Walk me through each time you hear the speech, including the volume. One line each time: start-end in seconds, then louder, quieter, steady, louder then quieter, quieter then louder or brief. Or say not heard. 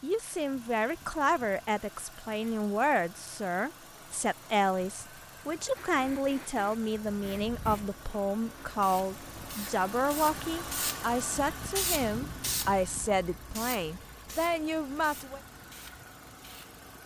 0.0-15.4 steady.